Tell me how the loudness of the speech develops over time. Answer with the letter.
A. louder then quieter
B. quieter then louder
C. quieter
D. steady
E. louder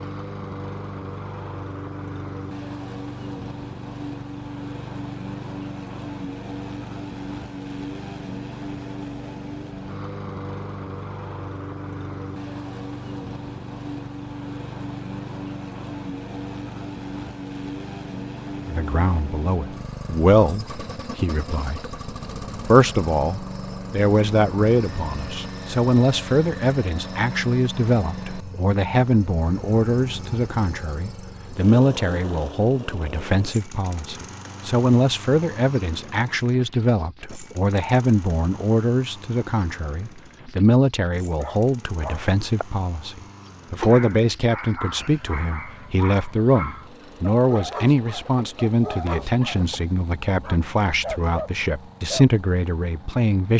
D.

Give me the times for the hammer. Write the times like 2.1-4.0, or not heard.
not heard.